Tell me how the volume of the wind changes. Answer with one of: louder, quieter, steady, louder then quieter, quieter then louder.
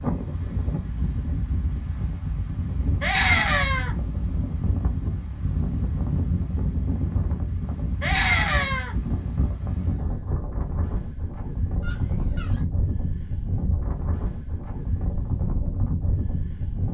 steady.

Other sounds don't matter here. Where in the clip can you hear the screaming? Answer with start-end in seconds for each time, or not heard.
3.0-4.0, 8.0-8.9, 11.8-12.7.